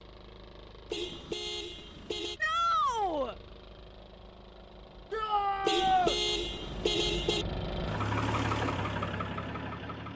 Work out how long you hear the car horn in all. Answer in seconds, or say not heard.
3 s.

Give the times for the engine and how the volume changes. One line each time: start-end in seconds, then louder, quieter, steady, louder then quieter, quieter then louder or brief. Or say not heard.
0.0-10.1 louder.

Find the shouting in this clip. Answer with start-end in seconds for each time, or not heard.
2.4-3.4, 5.1-6.2.